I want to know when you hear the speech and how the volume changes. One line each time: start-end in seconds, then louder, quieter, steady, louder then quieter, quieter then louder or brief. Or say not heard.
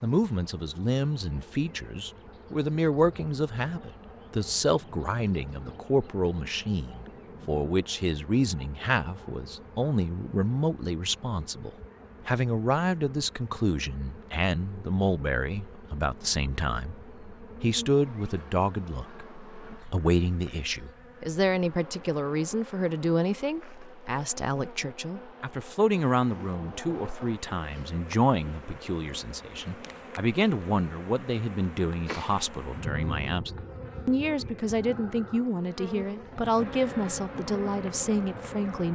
0.0-38.8 steady.